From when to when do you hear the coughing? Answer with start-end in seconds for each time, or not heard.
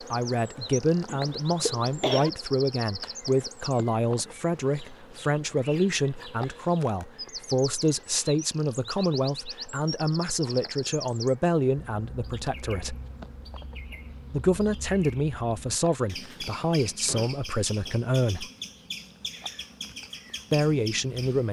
1.1-2.3.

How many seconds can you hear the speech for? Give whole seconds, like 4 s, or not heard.
18 s.